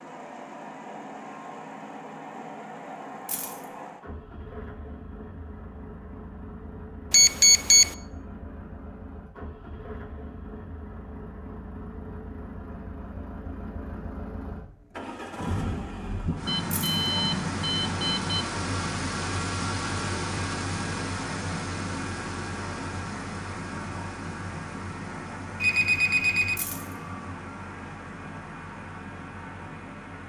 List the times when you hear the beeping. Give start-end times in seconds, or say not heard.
7.1-8.0, 16.4-18.5, 25.6-26.6.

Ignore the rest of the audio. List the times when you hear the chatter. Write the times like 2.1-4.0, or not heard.
not heard.